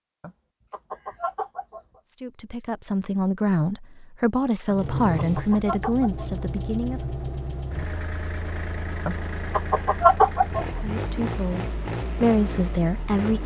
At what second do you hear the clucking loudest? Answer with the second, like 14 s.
10 s.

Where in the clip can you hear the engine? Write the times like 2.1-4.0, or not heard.
4.7-13.4.